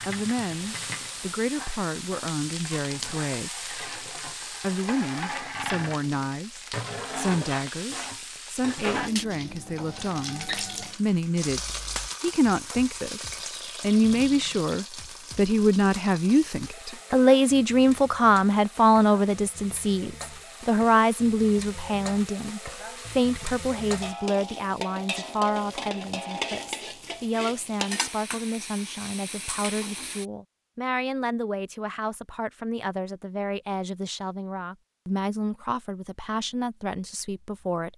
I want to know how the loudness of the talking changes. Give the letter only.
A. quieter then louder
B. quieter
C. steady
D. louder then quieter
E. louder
D.